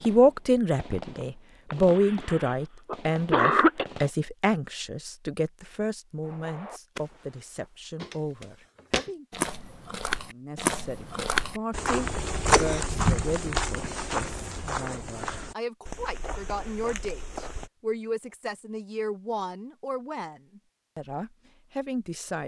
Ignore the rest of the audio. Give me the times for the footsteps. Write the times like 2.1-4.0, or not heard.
8.0-17.7.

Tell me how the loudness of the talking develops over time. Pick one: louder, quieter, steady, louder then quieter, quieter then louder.
quieter.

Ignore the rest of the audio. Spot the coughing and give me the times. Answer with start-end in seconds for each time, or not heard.
1.7-3.9, 12.3-12.8.